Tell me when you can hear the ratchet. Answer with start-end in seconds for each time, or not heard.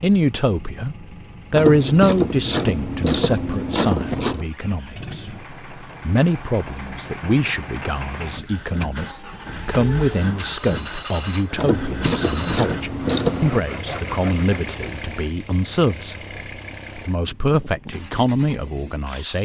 1.6-4.5, 11.6-13.7.